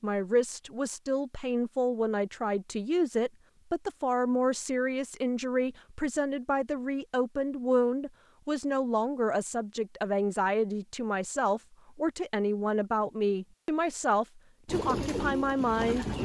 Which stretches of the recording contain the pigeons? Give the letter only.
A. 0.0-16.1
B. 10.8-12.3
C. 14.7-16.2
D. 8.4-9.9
C.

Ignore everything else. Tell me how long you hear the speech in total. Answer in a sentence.
You can hear the speech for 16 seconds altogether.